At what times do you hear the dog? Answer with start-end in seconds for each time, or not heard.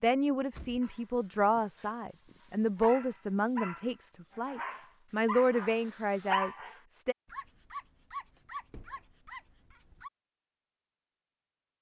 0.8-10.1.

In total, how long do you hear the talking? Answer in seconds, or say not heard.
7 s.